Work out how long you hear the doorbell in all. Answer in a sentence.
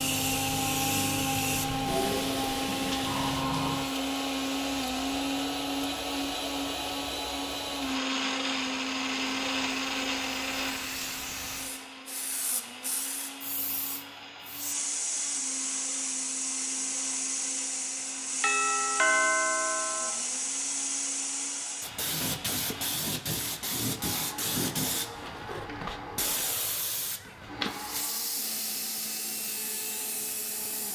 The doorbell can be heard for 2 seconds in total.